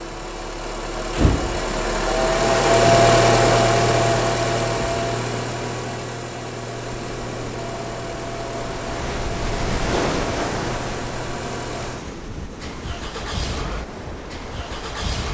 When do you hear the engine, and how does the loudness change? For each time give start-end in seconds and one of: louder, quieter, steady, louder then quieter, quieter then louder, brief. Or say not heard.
0.0-15.2 quieter.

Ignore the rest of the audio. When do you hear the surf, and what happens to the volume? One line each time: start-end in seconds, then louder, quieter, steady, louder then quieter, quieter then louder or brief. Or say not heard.
6.8-15.2 louder then quieter.